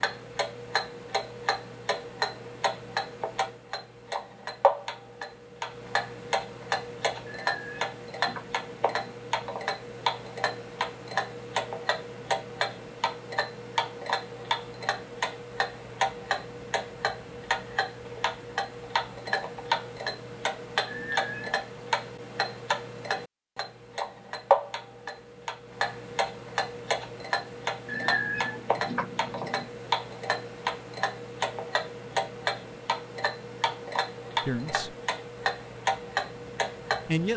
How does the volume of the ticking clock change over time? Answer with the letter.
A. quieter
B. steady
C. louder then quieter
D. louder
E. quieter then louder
B.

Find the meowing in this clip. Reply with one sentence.
The meowing can be heard from 7.2 to 9.2 s, from 20.9 to 21.6 s and from 27.9 to 29.7 s.